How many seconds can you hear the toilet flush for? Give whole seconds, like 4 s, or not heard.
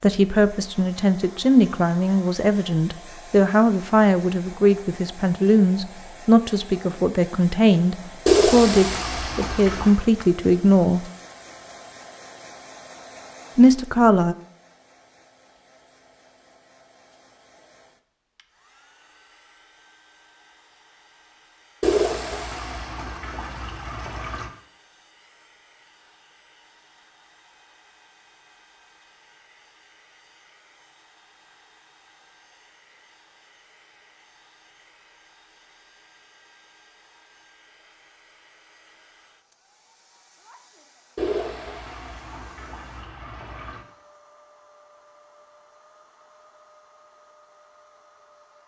7 s.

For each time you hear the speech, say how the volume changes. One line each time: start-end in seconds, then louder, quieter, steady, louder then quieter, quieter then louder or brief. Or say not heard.
0.0-11.1 steady
13.6-14.3 brief.